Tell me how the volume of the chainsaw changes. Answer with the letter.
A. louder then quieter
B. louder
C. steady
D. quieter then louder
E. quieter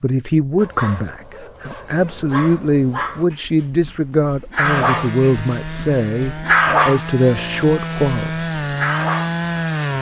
B.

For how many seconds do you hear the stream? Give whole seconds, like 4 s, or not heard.
not heard.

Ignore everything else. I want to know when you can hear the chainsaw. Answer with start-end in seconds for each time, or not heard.
4.6-9.9.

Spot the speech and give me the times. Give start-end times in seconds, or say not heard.
0.0-8.5.